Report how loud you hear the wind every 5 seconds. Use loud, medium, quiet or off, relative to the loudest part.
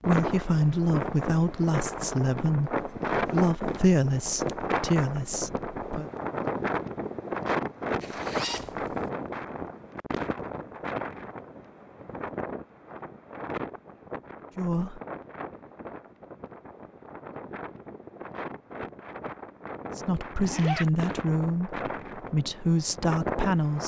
loud, loud, medium, medium, medium.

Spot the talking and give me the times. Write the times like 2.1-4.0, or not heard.
0.0-6.1, 14.6-15.0, 19.9-23.8.